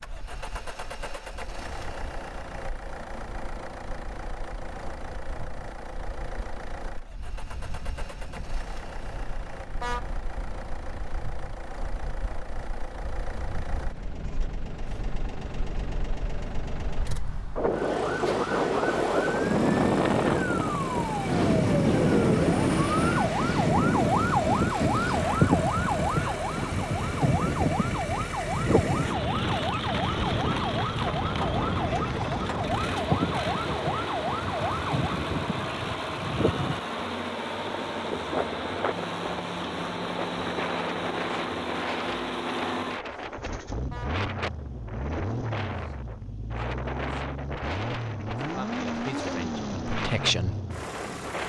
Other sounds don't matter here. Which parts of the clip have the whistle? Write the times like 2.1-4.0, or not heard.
not heard.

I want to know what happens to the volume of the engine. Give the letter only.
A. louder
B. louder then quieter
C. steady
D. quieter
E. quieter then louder
A.